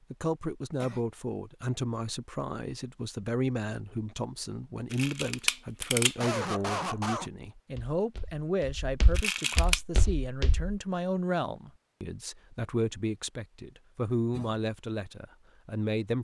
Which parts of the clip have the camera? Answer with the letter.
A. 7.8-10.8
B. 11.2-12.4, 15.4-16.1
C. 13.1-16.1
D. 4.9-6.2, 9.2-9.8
D.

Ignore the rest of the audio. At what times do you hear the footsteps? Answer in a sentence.
You can hear the footsteps from 7.8 to 10.8 s.